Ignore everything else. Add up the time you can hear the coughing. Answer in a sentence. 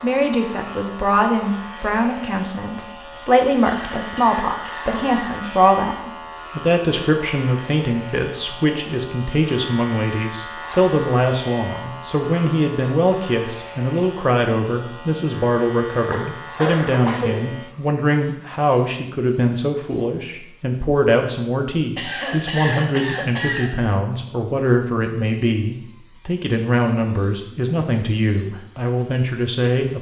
The coughing can be heard for 5 seconds in total.